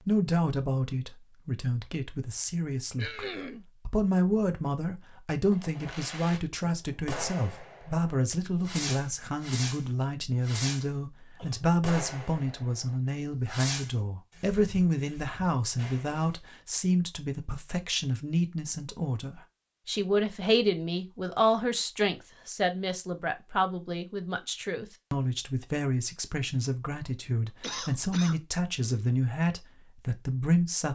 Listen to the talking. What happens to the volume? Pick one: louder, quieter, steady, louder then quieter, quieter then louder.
steady.